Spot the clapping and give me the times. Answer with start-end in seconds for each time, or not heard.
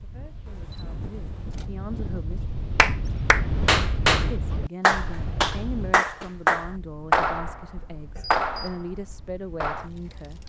2.8-9.9.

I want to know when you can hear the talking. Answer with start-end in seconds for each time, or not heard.
0.0-2.4, 4.2-10.4.